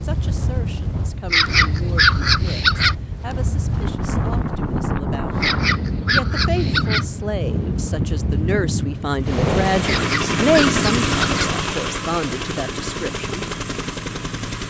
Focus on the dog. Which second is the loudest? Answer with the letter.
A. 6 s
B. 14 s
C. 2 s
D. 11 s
C.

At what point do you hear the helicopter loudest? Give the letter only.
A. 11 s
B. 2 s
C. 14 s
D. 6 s
A.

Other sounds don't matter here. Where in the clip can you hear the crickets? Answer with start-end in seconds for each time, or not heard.
not heard.